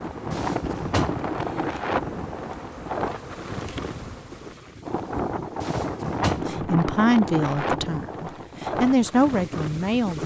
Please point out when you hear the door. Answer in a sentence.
The door can be heard from 0.3 to 1.3 s and from 5.6 to 6.6 s.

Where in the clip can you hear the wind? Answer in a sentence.
You can hear the wind from 0.0 to 10.2 s.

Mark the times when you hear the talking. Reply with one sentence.
You can hear the talking from 6.3 to 10.2 s.